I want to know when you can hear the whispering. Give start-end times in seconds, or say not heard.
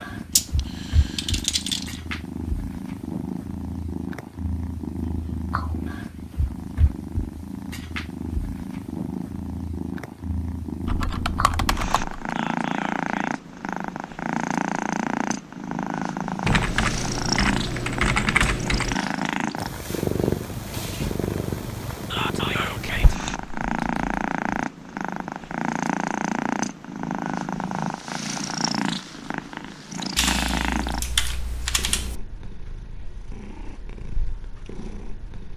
12.3-13.4, 22.1-23.1.